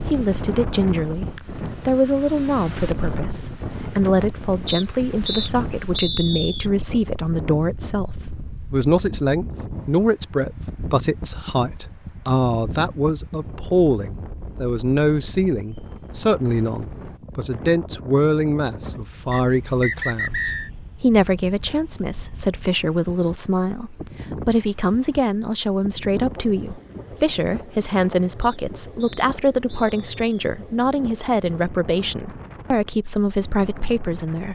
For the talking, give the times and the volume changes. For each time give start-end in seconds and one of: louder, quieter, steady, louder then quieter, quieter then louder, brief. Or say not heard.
0.0-34.5 steady.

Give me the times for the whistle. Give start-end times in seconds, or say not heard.
4.7-6.7, 19.3-20.7, 28.4-30.4.